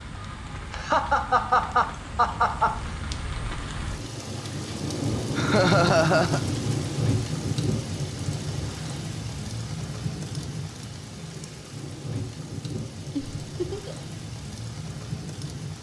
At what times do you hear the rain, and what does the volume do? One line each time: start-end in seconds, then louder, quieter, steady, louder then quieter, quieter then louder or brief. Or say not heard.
0.0-15.7 louder then quieter.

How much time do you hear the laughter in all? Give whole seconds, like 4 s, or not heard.
4 s.